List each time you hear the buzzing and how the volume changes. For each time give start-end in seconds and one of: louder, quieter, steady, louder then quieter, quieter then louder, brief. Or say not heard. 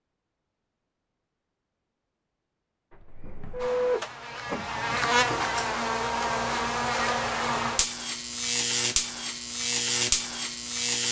3.6-11.0 steady.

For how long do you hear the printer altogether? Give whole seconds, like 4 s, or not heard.
2 s.